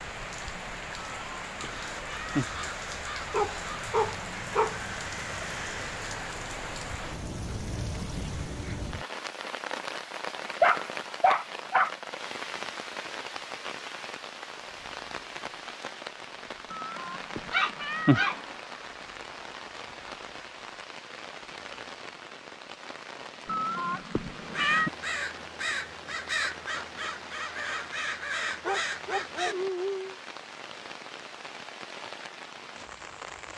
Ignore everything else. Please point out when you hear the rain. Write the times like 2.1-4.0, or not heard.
0.0-33.5.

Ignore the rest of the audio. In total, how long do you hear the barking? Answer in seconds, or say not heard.
5 s.